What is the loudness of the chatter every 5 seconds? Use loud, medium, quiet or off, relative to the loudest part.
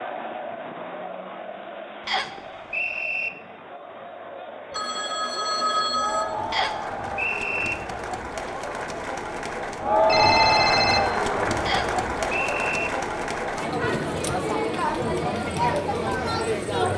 quiet, medium, loud, loud.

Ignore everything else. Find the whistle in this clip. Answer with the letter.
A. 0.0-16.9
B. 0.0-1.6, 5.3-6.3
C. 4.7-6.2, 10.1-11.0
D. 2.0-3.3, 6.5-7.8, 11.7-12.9
D.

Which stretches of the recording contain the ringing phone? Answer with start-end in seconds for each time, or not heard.
4.7-6.2, 10.1-11.0.